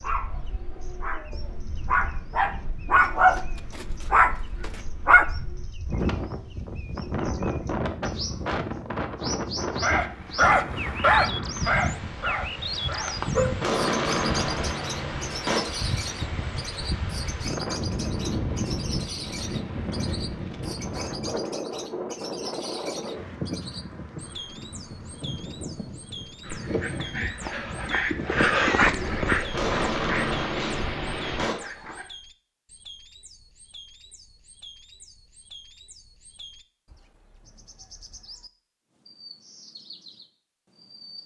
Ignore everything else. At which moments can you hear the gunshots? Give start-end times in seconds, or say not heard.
13.6-15.7, 29.5-31.6.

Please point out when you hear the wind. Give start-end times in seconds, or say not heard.
0.0-31.4.